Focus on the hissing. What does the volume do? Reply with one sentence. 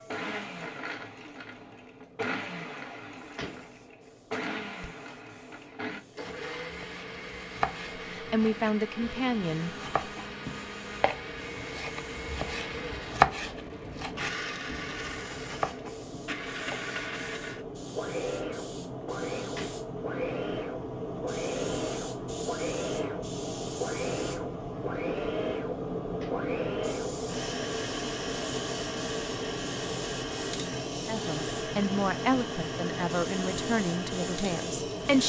The volume of the hissing goes up.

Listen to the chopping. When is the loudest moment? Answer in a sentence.
The volume of the chopping peaks at 13 seconds.